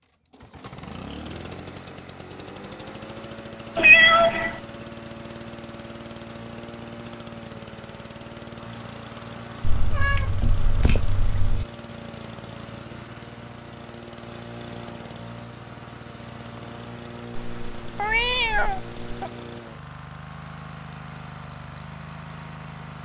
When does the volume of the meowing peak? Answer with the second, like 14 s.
4 s.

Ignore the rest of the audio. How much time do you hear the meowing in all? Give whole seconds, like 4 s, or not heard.
5 s.